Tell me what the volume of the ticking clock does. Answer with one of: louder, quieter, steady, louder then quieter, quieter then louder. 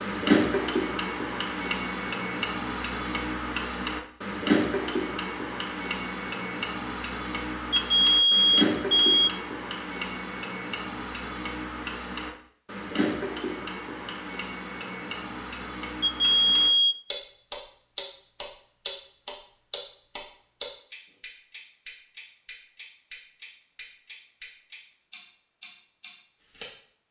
quieter.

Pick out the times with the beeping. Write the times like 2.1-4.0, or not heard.
7.7-9.3, 16.0-16.9.